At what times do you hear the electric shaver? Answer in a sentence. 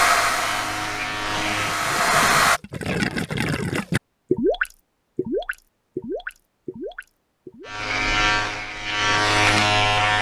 The electric shaver can be heard from 0.0 to 1.9 s and from 7.7 to 10.1 s.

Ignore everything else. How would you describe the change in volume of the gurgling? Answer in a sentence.
The loudness of the gurgling goes up, then down.